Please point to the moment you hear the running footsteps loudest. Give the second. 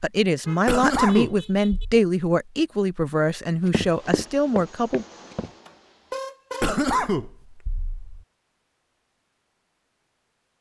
4 s.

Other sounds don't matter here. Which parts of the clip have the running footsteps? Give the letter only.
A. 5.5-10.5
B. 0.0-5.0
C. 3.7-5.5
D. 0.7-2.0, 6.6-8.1
C.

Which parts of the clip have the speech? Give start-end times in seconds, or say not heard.
0.0-5.0.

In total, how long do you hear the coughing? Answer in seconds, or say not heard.
3 s.